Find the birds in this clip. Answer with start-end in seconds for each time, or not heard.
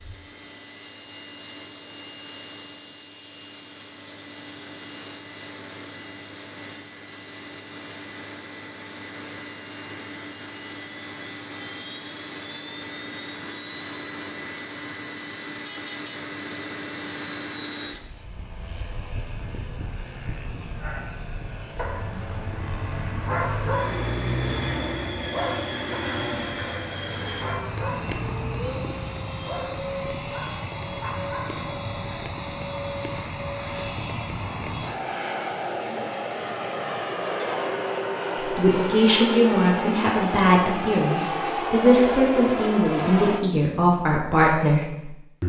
not heard.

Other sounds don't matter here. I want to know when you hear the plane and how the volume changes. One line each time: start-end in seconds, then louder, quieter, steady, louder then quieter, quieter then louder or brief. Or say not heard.
0.0-43.4 louder.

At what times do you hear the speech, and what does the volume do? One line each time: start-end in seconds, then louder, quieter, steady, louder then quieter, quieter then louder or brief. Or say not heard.
38.4-45.4 steady.